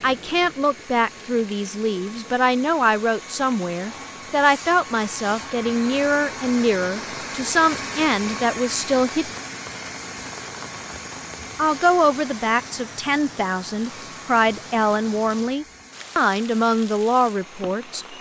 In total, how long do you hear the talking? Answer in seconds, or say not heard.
16 s.